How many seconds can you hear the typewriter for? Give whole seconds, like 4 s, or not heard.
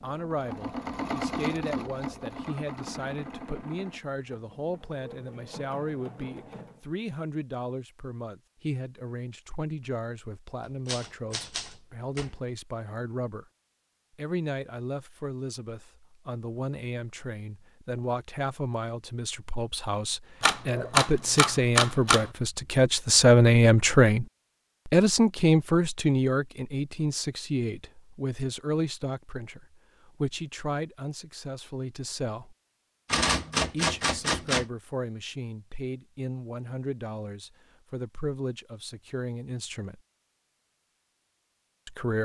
5 s.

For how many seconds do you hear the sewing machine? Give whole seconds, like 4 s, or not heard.
7 s.